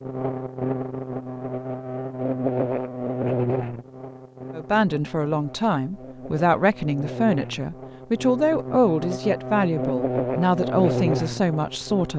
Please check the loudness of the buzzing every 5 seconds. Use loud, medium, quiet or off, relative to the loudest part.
loud, medium, loud.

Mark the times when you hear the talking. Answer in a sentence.
You can hear the talking from 4.5 to 12.1 s.